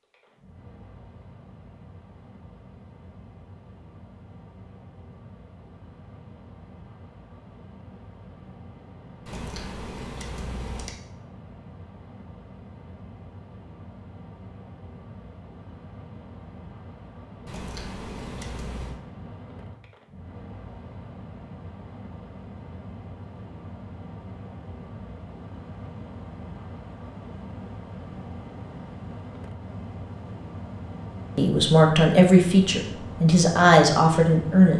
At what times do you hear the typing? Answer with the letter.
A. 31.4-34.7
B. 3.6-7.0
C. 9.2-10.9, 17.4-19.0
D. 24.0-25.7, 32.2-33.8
C.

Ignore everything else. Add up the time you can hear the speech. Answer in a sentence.
The speech can be heard for 3 seconds in total.